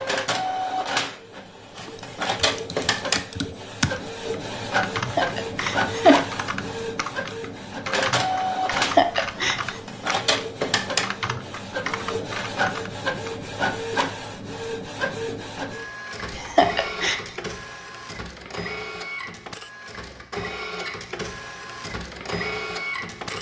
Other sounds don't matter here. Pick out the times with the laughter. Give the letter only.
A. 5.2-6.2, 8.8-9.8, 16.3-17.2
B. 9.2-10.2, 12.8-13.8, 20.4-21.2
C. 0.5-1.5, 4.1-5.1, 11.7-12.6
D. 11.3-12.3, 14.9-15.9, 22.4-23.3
A.